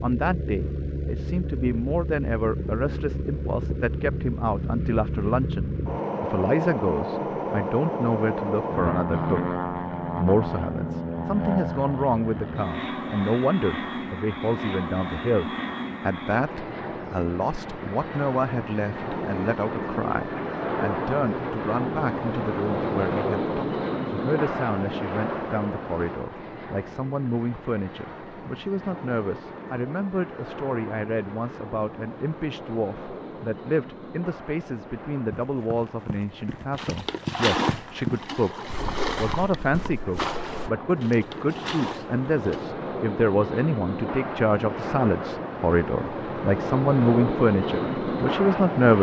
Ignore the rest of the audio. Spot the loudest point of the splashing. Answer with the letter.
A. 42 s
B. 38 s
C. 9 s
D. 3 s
B.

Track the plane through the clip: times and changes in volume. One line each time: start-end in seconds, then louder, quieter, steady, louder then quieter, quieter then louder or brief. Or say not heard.
0.0-48.9 quieter then louder.